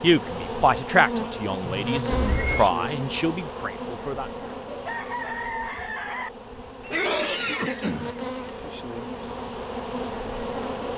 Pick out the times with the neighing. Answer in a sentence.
The neighing can be heard from 1.6 to 2.8 s and from 6.8 to 8.8 s.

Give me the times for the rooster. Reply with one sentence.
You can hear the rooster from 4.7 to 6.3 s.